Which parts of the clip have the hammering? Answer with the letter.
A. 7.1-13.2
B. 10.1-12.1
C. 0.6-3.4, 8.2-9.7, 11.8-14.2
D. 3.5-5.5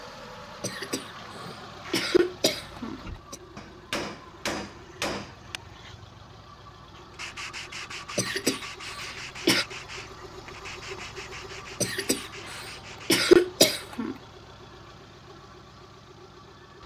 D.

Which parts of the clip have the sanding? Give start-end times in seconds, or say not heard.
7.1-13.2.